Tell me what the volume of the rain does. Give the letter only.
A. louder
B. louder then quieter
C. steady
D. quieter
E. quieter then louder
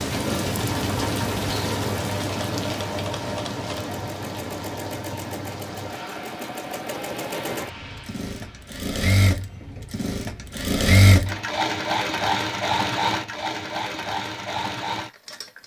D.